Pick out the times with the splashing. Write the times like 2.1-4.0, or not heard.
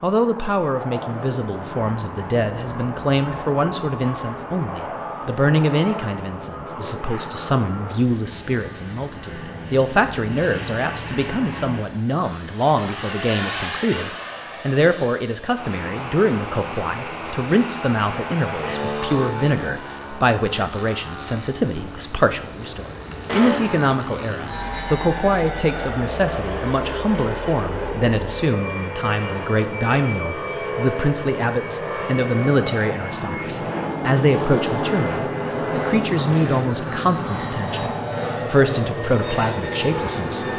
not heard.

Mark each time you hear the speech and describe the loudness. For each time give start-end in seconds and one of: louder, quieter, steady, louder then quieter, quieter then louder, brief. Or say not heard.
0.0-40.5 steady.